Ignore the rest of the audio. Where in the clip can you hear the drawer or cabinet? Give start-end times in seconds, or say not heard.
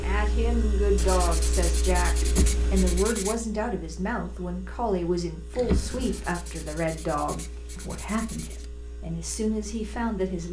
2.2-2.8, 5.5-6.2.